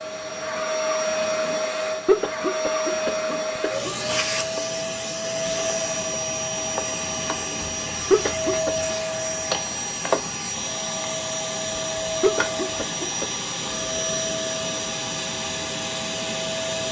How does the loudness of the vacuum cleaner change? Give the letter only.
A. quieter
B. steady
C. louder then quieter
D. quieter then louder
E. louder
B.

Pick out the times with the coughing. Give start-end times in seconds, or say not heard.
2.0-3.9, 8.1-8.7, 12.2-13.5.